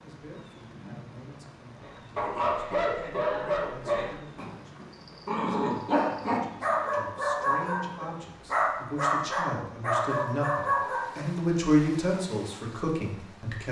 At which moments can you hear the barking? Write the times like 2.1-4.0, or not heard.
1.9-11.3.